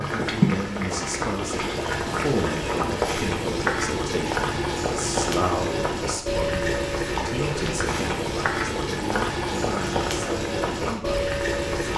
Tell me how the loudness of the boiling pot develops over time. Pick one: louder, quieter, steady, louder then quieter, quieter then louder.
steady.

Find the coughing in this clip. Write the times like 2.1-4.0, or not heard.
not heard.